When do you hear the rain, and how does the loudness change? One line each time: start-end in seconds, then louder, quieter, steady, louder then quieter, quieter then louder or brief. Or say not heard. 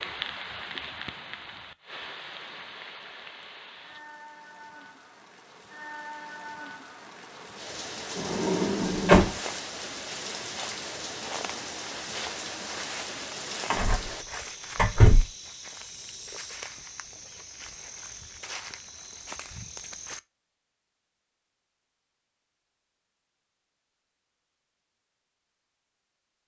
0.0-14.2 quieter then louder.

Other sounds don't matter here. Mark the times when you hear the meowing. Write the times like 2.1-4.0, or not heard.
not heard.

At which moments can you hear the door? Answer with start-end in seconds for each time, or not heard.
8.2-9.3, 13.7-15.2.